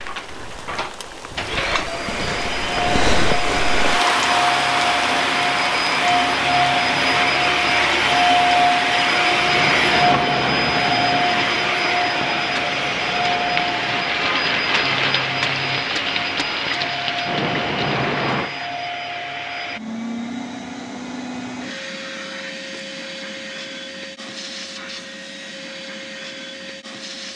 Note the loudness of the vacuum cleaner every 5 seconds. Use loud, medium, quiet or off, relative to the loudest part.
medium, loud, loud, medium, quiet, quiet.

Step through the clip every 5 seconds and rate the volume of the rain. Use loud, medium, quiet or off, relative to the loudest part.
loud, loud, loud, loud, off, off.